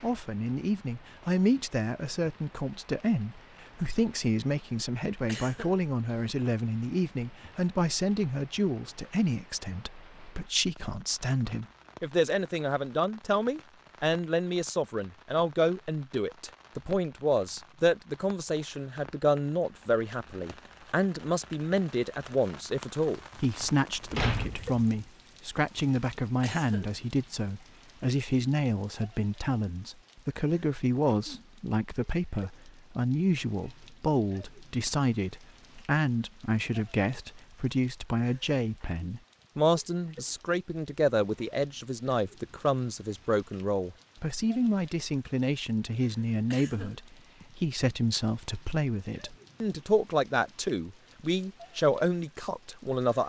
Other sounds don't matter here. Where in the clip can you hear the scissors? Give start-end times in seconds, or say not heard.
not heard.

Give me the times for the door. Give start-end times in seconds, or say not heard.
23.6-24.9.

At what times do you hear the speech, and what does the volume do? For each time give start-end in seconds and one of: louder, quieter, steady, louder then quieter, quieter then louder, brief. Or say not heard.
0.0-53.2 steady.